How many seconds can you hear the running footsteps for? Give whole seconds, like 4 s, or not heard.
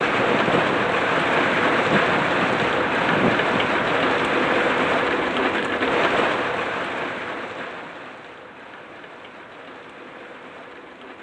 not heard.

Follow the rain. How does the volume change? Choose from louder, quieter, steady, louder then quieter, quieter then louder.
quieter.